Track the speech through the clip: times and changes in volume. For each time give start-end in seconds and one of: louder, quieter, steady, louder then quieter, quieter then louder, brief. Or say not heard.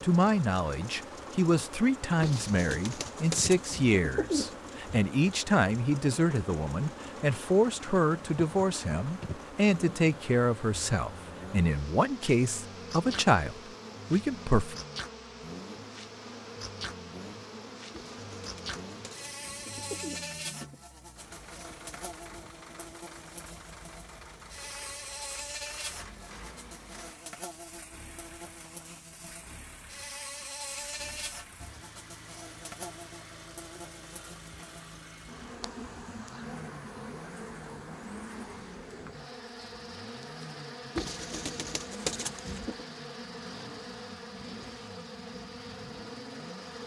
0.0-14.8 steady.